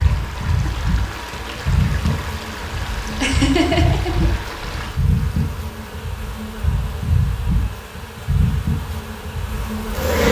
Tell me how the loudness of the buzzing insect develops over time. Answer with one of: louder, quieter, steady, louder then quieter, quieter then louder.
steady.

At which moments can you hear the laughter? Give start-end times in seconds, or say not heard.
3.2-4.2.